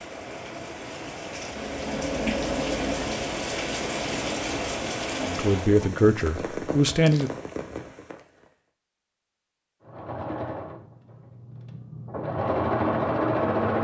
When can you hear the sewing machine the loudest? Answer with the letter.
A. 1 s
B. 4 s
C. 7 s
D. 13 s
D.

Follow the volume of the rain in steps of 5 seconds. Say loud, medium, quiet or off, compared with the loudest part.
loud, loud, off.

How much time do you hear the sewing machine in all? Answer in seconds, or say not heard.
8 s.